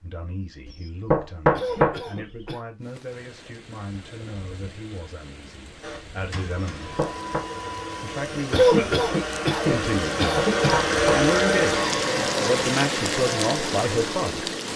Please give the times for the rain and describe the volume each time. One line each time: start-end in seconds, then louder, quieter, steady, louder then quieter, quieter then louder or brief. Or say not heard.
2.8-14.7 louder.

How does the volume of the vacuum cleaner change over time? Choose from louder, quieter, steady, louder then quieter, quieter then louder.
louder then quieter.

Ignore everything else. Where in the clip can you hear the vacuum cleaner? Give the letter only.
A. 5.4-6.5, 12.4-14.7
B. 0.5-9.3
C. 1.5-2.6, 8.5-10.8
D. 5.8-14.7
D.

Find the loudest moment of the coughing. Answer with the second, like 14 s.
9 s.